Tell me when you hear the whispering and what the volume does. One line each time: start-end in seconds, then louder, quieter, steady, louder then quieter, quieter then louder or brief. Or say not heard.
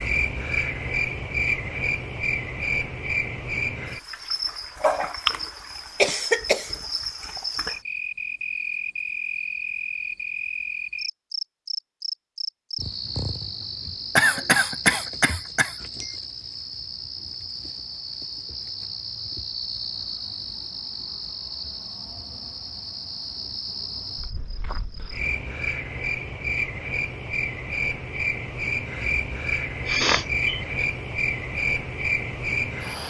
not heard.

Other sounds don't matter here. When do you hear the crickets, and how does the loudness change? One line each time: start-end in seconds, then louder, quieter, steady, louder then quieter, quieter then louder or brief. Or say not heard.
0.0-33.0 quieter then louder.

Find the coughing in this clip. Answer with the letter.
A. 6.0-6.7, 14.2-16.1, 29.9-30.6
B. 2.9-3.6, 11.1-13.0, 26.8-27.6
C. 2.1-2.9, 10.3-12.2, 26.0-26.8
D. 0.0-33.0
A.